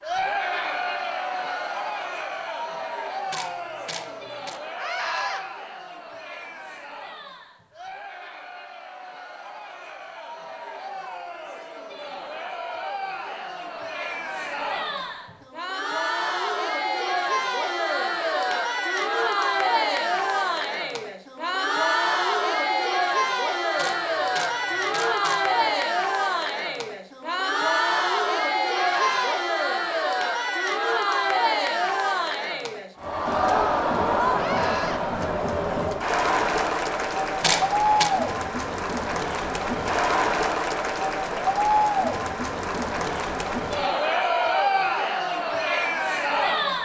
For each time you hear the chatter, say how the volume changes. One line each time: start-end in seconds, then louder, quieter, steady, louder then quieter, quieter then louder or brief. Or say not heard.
0.0-46.7 louder.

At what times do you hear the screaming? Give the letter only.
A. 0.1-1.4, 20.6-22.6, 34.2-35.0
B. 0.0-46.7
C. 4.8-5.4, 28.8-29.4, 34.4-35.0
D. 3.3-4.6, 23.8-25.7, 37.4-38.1
C.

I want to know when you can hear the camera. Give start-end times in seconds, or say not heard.
3.3-4.6, 23.8-25.7, 37.4-38.1.